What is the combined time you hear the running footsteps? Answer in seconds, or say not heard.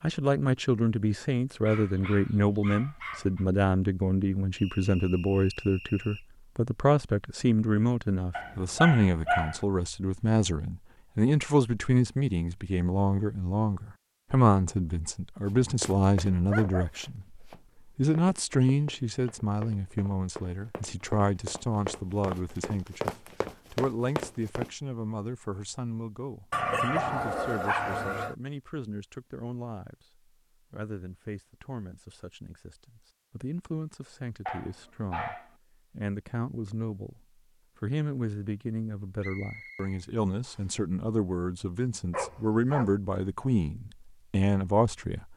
9 s.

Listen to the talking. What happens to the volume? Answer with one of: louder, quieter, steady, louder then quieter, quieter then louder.
quieter then louder.